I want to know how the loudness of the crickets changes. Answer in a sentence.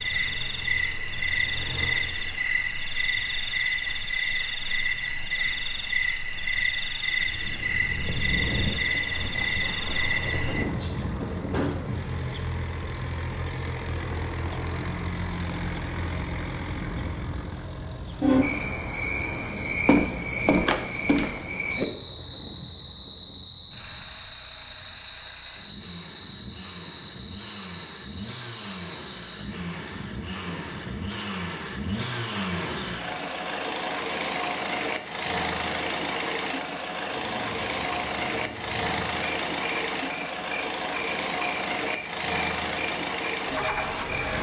The volume of the crickets goes down.